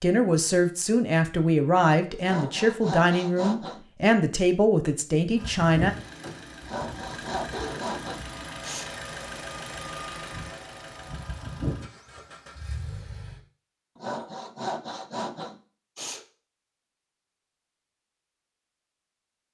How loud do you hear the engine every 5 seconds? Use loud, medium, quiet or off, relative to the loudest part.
off, loud, loud, off.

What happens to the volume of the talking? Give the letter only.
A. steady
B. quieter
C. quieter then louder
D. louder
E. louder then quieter
A.